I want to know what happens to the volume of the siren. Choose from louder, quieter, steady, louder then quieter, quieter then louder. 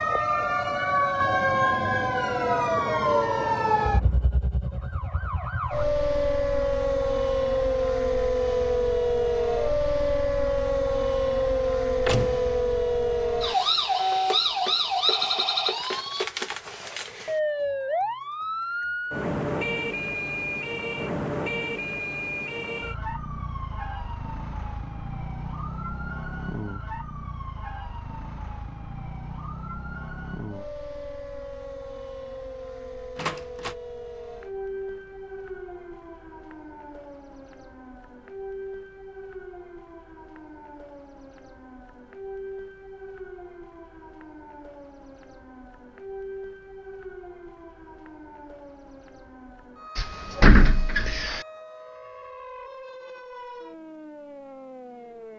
quieter.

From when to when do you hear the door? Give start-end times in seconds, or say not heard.
12.1-12.6, 33.1-33.8, 50.0-51.4.